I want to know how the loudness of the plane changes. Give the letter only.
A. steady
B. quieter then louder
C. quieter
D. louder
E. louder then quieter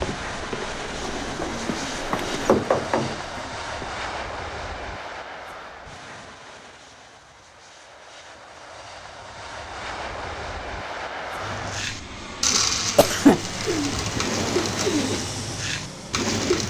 B.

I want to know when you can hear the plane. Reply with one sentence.
The plane can be heard from 0.0 to 16.4 s.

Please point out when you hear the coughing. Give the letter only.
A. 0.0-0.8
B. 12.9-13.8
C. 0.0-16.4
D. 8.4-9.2
B.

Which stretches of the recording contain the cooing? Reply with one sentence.
The cooing can be heard from 0.0 to 4.0 s and from 11.4 to 16.6 s.